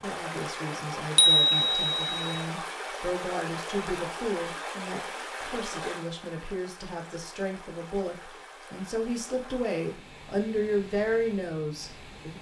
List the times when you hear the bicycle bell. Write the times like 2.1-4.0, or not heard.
1.1-2.4.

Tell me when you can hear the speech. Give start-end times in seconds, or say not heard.
0.0-12.3.